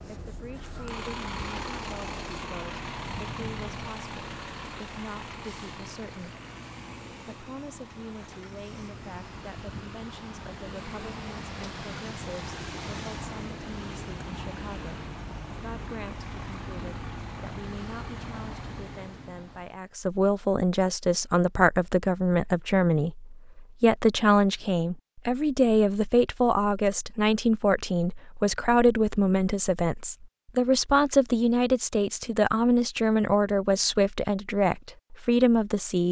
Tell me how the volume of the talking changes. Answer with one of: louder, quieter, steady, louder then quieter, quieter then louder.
louder.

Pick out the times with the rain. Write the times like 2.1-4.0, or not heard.
not heard.